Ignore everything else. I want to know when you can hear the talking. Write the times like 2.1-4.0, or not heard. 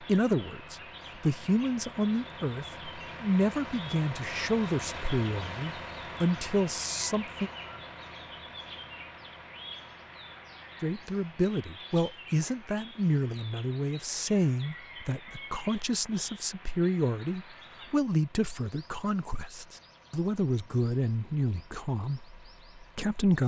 0.0-7.5, 10.8-23.4.